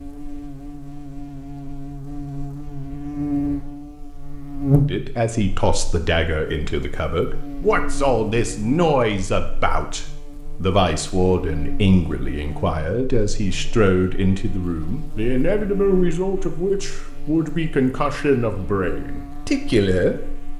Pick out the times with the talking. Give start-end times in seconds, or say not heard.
4.8-20.5.